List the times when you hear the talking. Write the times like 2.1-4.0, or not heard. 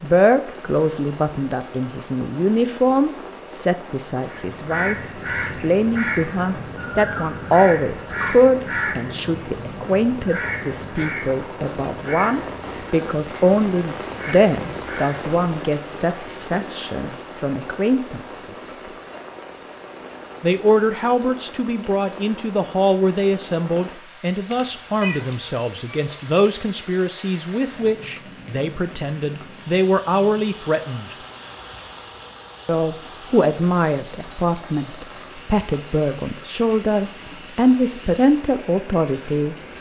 0.0-18.8, 20.4-31.1, 32.6-39.7.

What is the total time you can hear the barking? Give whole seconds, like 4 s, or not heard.
not heard.